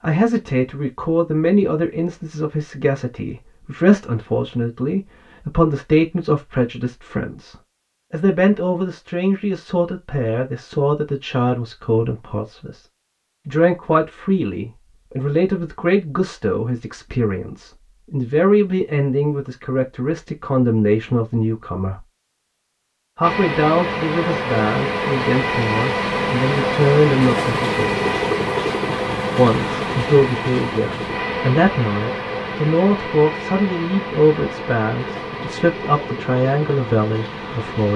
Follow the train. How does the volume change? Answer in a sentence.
The volume of the train goes down.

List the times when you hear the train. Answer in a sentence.
You can hear the train from 23.2 to 37.9 s.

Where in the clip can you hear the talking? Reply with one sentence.
The talking can be heard from 0.0 to 12.8 s, from 13.4 to 22.0 s, from 23.1 to 28.1 s and from 29.4 to 37.9 s.